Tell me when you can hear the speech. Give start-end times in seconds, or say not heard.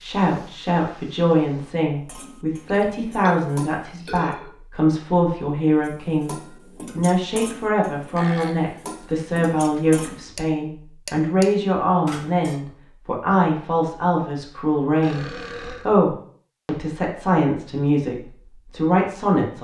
0.0-6.3, 7.0-19.5.